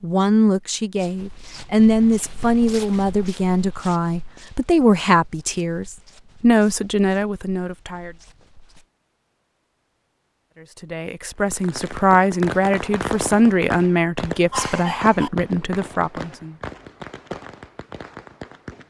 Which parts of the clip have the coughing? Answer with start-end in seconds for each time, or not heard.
14.5-15.3.